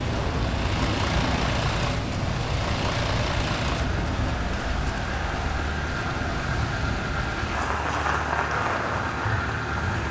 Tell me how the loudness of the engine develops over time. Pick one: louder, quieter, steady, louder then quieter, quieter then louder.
steady.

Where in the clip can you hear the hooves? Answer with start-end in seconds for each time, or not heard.
not heard.